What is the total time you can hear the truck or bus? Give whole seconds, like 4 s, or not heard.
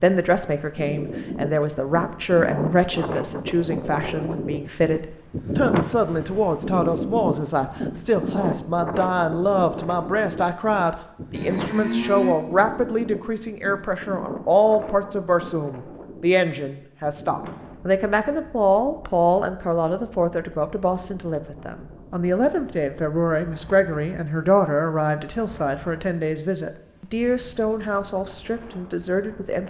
not heard.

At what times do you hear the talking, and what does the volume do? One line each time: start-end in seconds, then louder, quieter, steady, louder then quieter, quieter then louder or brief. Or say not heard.
0.0-29.6 steady.